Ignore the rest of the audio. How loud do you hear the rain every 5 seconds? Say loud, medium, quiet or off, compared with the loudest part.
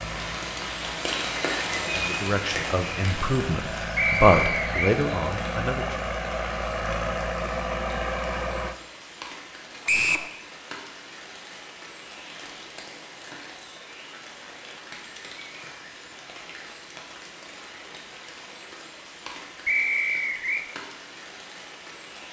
loud, medium, medium, medium, medium.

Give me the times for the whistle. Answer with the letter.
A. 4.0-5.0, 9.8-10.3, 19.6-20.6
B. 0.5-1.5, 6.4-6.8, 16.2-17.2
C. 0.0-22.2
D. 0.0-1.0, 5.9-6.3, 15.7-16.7
A.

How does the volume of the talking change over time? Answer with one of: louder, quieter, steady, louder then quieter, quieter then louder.
louder then quieter.